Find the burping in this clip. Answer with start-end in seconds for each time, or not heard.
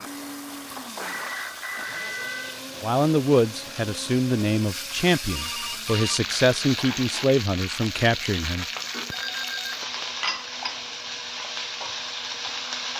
not heard.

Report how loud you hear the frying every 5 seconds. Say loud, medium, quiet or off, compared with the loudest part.
medium, loud, loud.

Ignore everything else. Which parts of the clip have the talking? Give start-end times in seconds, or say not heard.
2.8-8.7.